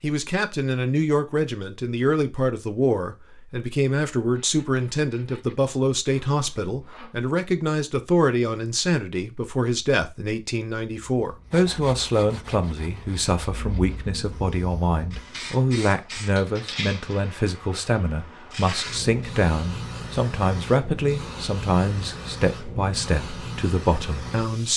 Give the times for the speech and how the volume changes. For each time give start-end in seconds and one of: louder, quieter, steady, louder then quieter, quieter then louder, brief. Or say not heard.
0.0-24.7 steady.